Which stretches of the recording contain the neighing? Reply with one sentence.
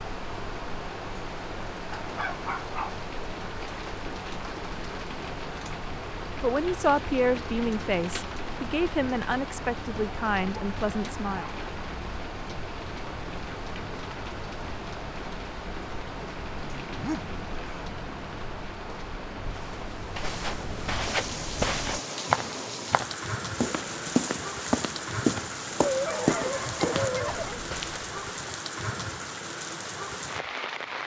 You can't hear the neighing here.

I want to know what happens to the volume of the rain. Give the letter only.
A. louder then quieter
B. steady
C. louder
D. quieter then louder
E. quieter
B.